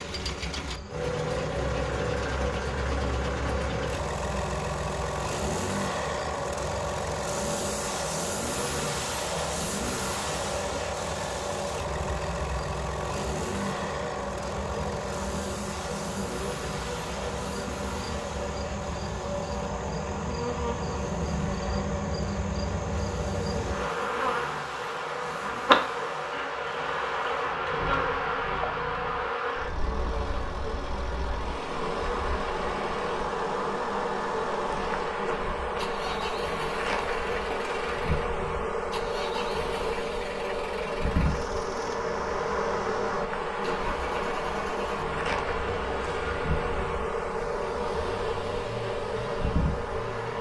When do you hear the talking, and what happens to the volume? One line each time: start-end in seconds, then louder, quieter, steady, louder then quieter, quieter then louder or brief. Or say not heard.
not heard.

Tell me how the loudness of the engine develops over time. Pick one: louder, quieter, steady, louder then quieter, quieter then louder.
quieter.